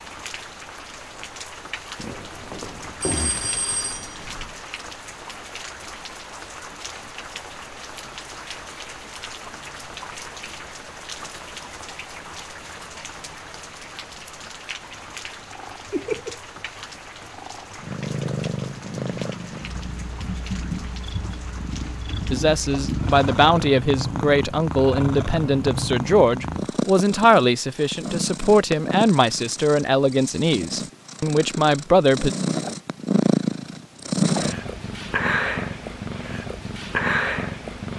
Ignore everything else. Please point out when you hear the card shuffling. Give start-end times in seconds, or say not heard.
not heard.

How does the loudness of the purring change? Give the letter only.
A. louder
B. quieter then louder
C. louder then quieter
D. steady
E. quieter
A.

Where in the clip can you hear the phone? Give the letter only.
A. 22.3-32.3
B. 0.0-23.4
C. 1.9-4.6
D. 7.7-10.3
C.